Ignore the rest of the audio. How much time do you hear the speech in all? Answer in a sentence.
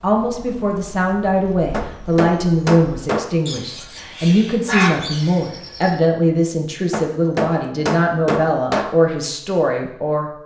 You can hear the speech for 10 seconds altogether.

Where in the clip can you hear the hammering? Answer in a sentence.
The hammering can be heard from 1.7 to 3.3 s and from 6.9 to 8.9 s.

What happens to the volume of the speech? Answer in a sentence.
The loudness of the speech stays about the same.